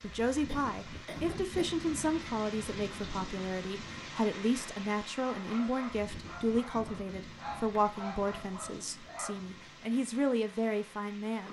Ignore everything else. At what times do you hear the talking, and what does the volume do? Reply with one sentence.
You can hear the talking from 0.0 to 11.4 s, at a steady volume.